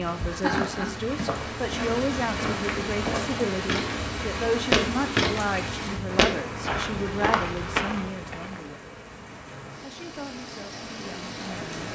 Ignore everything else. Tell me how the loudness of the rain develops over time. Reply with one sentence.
The loudness of the rain goes down.